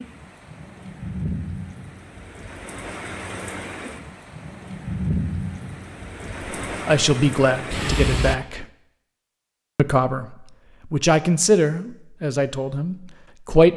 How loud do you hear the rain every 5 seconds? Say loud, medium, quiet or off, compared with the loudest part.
medium, loud, off.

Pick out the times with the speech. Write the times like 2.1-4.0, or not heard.
6.8-8.7, 9.8-13.7.